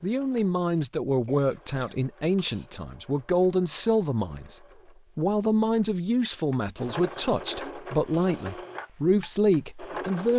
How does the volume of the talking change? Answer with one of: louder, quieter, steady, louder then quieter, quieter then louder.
steady.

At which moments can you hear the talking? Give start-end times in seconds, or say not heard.
0.0-4.5, 5.2-10.3.